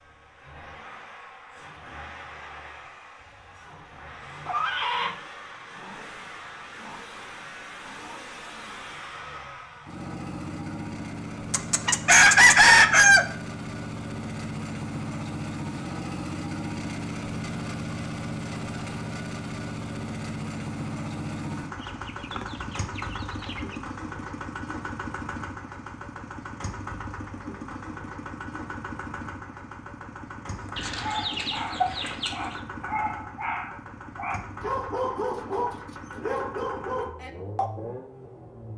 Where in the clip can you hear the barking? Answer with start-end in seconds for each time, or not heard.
30.5-37.7.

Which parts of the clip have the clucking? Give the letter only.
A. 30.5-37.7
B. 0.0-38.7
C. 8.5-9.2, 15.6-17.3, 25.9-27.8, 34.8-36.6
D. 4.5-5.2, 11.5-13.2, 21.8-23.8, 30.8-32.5
D.